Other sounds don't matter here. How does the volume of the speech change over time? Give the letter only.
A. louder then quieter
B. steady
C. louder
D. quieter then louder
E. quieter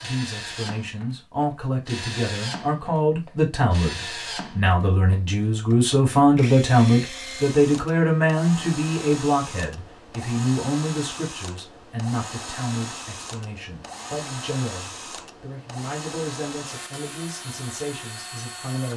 A.